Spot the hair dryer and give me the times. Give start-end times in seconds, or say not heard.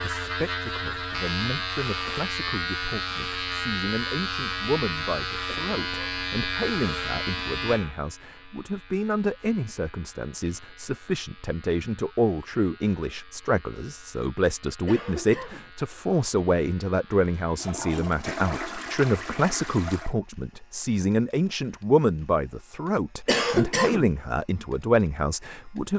not heard.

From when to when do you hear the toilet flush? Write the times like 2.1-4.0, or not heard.
17.6-20.1.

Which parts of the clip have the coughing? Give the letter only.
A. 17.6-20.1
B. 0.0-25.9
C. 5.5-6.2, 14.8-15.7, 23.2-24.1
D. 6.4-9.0
C.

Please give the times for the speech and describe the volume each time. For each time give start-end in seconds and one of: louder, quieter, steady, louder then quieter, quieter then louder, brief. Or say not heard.
0.0-25.9 louder.